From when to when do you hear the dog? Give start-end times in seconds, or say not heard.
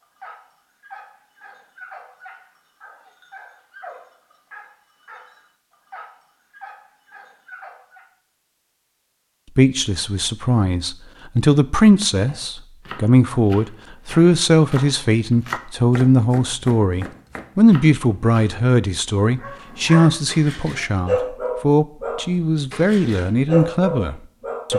0.0-8.1, 19.4-24.7.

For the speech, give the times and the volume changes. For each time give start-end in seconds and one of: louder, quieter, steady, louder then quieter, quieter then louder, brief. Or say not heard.
9.6-24.7 steady.